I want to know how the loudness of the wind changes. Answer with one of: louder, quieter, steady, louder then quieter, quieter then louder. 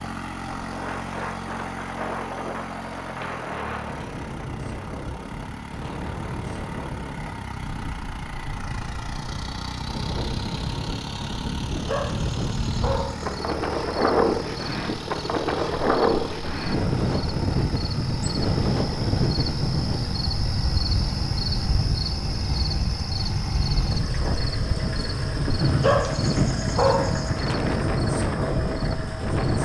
louder.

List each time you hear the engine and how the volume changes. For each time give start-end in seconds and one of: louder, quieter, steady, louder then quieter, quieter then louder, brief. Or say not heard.
0.0-29.6 steady.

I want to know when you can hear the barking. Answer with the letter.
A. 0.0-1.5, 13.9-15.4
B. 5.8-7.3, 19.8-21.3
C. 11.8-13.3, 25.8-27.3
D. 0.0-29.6
C.